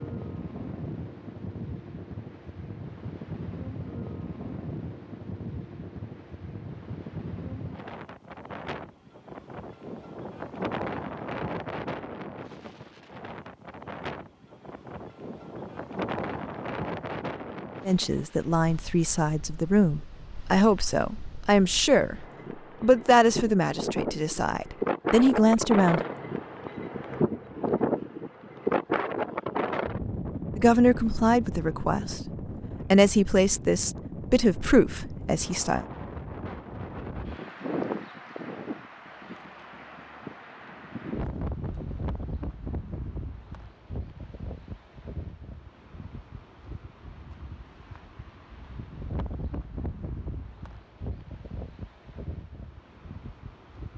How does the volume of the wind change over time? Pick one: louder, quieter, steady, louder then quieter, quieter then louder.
louder then quieter.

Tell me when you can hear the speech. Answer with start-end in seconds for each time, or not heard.
17.9-22.1, 22.8-26.0, 30.6-32.2, 32.9-35.9.